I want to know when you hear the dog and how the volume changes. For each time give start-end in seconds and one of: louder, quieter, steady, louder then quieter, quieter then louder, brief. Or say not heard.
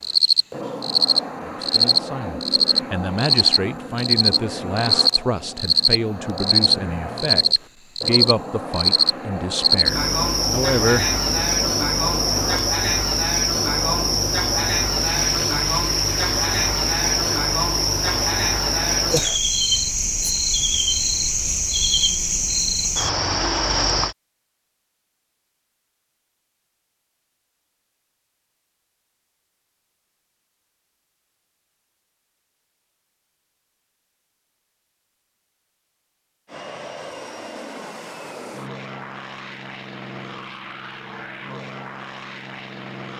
not heard.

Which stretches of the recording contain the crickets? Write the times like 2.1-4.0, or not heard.
0.0-24.1.